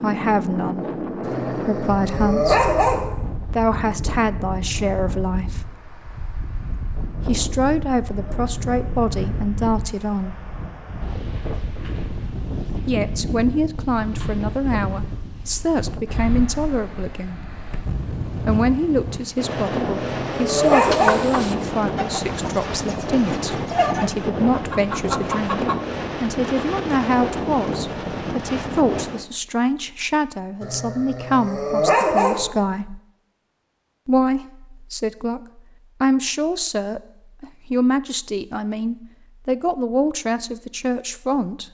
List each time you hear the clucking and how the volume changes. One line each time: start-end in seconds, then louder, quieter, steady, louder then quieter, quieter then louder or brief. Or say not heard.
20.7-25.8 quieter then louder.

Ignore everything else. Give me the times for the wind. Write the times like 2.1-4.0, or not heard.
0.0-29.2.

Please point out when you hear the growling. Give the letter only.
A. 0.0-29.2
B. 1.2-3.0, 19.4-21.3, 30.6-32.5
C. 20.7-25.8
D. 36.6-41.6
B.